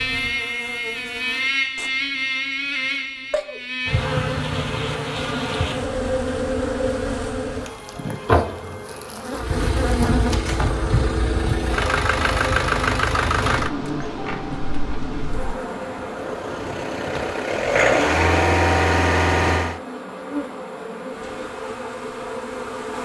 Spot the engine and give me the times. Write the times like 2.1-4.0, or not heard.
9.3-19.8.